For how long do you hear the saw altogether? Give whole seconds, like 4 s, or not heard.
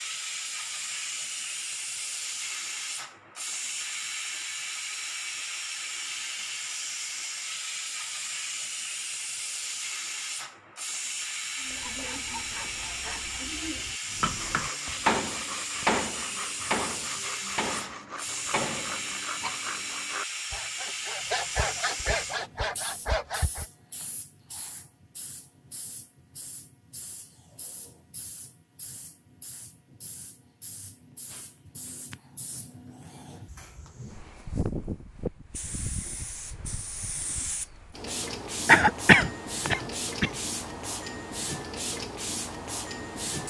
12 s.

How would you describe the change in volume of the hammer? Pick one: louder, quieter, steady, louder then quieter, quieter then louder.
quieter.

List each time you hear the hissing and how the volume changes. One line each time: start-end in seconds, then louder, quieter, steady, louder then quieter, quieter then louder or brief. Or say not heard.
0.0-43.4 quieter then louder.